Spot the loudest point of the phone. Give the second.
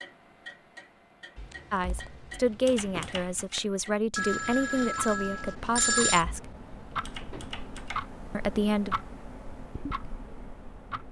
6 s.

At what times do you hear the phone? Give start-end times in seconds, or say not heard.
4.2-6.2.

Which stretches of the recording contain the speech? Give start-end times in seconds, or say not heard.
1.7-6.5, 8.3-8.9.